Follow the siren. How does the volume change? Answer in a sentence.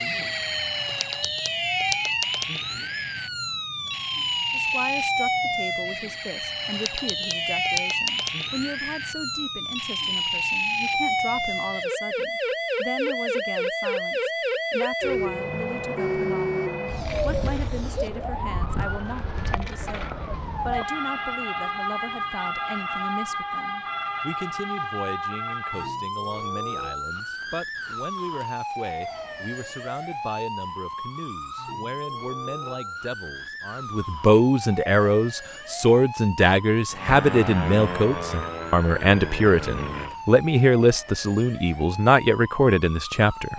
The loudness of the siren goes down.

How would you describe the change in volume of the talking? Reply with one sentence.
The volume of the talking goes up.